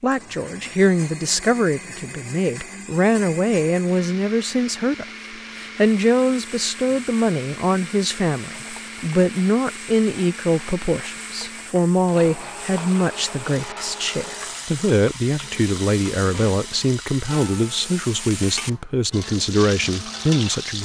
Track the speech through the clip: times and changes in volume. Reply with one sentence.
The speech can be heard from 0.0 to 20.8 s, at a steady volume.